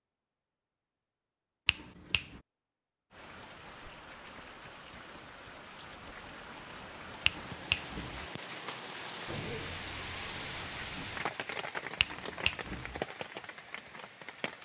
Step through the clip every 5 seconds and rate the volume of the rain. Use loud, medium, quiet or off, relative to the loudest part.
medium, loud, loud.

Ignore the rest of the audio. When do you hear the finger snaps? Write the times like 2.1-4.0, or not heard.
1.6-2.4, 7.2-8.2, 12.0-13.0.